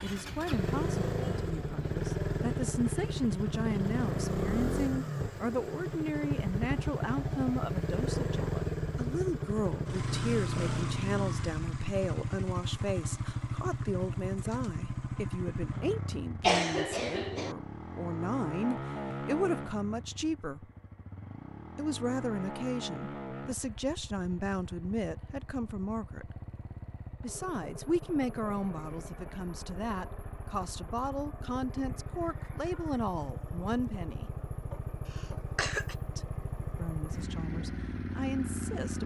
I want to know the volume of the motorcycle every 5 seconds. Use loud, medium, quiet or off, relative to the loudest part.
loud, loud, loud, medium, medium, quiet, medium, medium.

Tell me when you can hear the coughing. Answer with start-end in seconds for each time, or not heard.
16.4-17.6, 35.0-36.0.